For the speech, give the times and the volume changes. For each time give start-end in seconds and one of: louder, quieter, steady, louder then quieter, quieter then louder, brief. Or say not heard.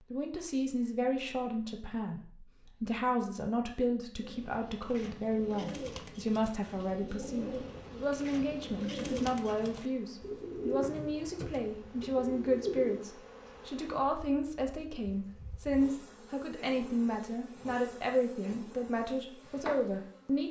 0.1-20.4 steady.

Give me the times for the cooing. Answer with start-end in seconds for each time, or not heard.
4.2-13.1.